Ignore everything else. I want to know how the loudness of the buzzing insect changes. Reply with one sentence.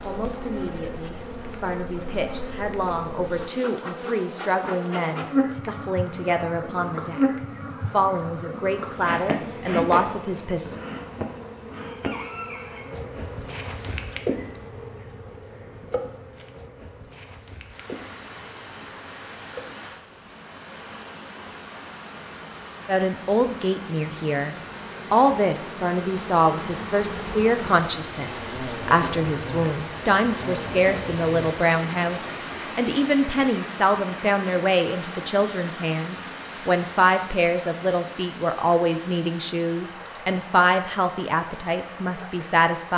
The loudness of the buzzing insect goes down, then up.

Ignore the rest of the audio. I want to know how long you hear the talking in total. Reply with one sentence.
You can hear the talking for 30 seconds altogether.